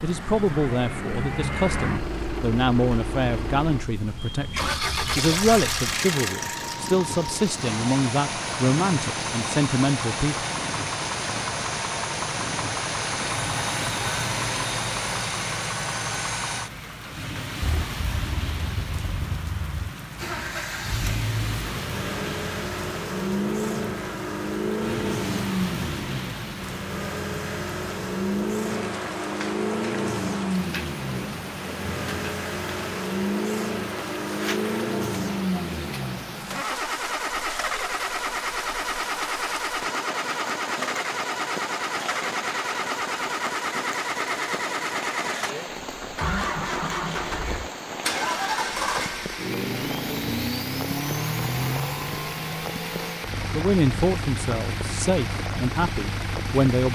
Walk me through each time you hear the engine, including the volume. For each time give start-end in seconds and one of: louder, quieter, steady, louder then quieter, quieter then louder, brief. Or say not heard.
0.0-56.9 steady.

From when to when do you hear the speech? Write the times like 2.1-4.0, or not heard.
0.0-10.4, 53.5-56.9.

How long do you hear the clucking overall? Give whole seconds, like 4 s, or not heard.
not heard.